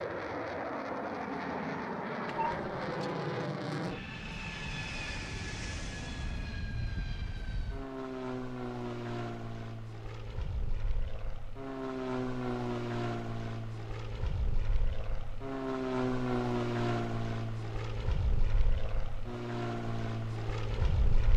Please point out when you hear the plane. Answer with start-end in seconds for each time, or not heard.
0.0-21.3.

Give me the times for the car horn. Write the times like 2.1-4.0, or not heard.
2.2-3.5.